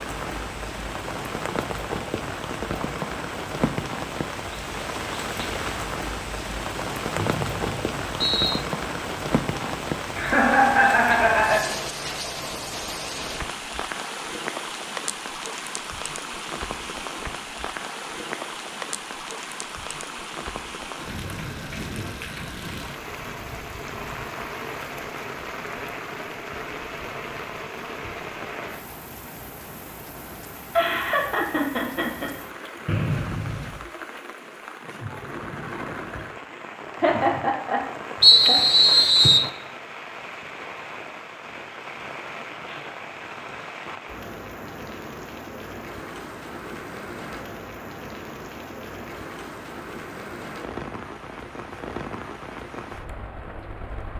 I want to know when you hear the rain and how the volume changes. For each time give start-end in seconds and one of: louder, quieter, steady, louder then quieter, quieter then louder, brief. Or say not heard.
0.0-54.1 quieter.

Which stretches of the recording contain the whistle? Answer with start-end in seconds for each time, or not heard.
7.2-8.7, 32.9-33.9, 38.2-39.5.